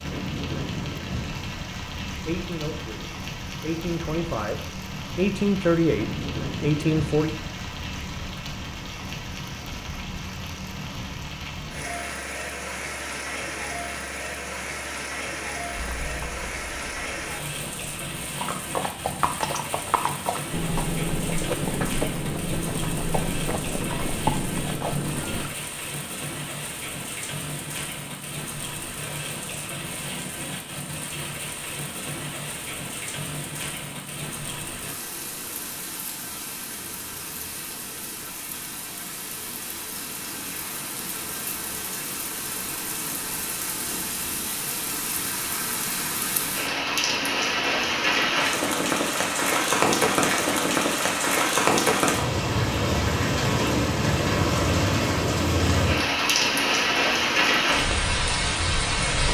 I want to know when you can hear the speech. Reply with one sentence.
You can hear the speech from 2.0 to 7.3 s.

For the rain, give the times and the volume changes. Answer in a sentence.
You can hear the rain from 0.0 to 59.2 s, getting louder.